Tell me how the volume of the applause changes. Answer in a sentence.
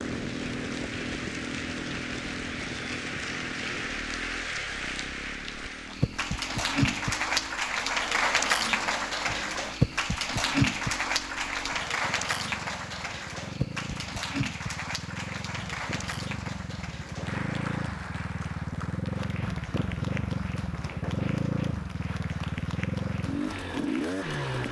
The loudness of the applause goes up, then down.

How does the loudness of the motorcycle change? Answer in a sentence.
The volume of the motorcycle goes down, then up.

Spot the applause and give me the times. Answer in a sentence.
You can hear the applause from 0.0 to 24.6 s.